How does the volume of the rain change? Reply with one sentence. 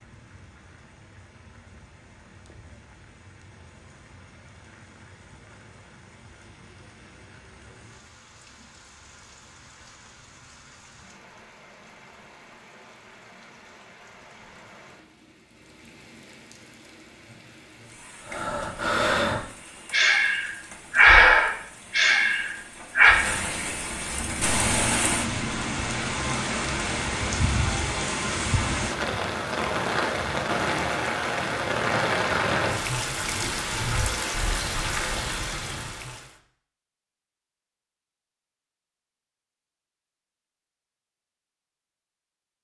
The loudness of the rain goes up.